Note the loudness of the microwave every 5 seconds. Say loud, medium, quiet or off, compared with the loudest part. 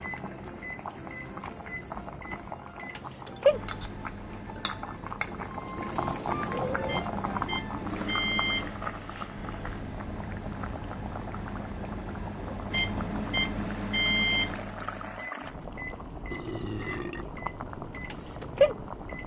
loud, medium, loud, loud.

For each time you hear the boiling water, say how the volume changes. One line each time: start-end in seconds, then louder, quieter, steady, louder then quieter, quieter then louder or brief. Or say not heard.
0.0-19.2 louder then quieter.